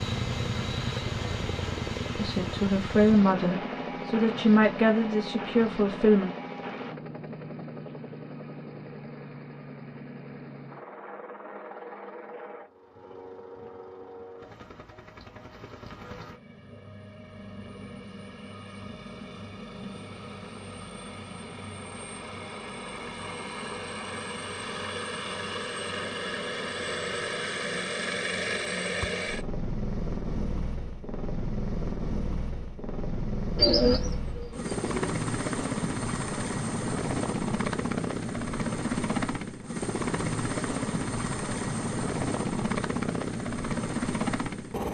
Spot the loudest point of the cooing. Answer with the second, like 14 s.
34 s.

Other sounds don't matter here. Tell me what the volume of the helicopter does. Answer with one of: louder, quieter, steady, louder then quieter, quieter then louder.
quieter then louder.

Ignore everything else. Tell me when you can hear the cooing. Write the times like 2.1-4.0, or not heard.
33.5-35.1.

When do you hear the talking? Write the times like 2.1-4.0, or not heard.
2.1-6.3.